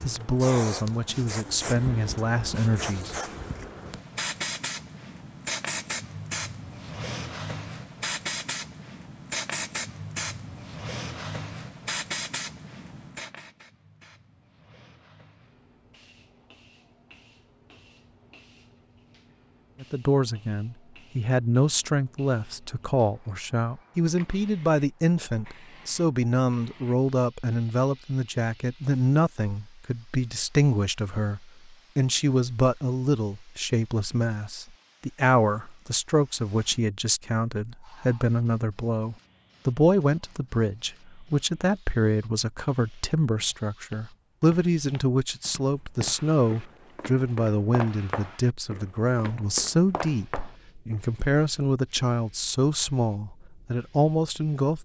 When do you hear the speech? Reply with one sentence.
The speech can be heard from 0.0 to 3.1 s and from 19.8 to 54.7 s.